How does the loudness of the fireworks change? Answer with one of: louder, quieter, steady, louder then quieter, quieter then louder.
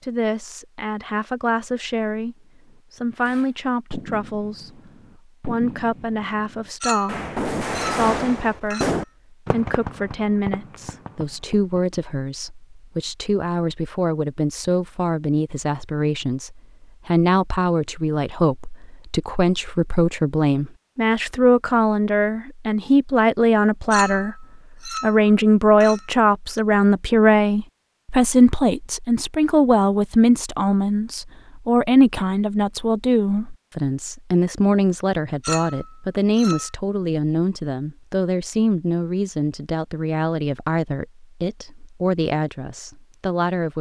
louder then quieter.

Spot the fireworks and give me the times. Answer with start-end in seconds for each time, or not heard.
3.1-11.9.